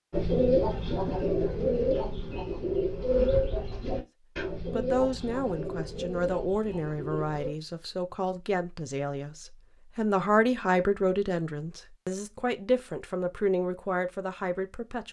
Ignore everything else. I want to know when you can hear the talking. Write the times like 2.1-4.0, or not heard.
4.7-15.0.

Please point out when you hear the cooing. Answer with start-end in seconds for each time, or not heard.
0.1-7.5.